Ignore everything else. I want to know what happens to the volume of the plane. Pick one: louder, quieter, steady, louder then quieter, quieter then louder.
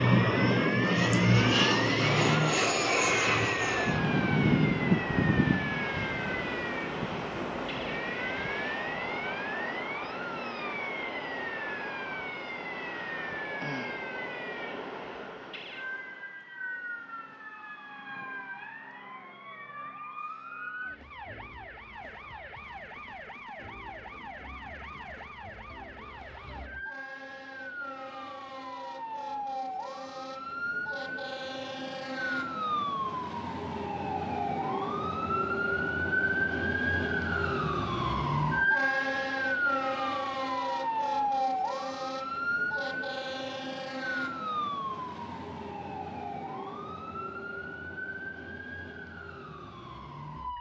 quieter.